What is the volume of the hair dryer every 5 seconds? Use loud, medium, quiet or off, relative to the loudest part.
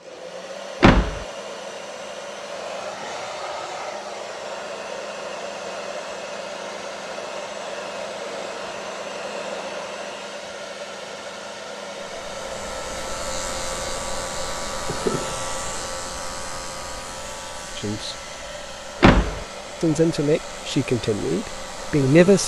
loud, loud, loud, medium, medium.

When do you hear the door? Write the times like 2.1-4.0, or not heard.
0.8-1.2, 19.0-19.4.